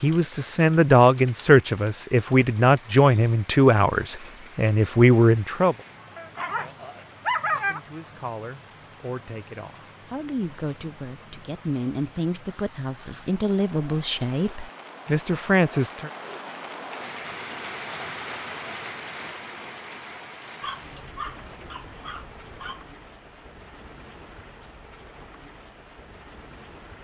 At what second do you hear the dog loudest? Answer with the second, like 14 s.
7 s.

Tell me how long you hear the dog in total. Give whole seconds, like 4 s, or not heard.
4 s.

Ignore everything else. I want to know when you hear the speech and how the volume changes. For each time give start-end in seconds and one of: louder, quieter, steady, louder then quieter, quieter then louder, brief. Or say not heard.
0.0-5.8 steady
7.5-16.1 louder.